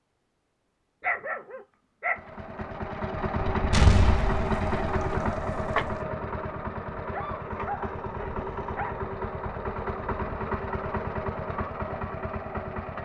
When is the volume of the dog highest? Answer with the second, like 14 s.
1 s.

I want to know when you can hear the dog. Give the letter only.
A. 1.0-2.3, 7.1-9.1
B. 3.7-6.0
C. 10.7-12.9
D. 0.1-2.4
A.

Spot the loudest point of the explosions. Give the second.
4 s.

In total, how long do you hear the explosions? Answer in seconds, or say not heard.
2 s.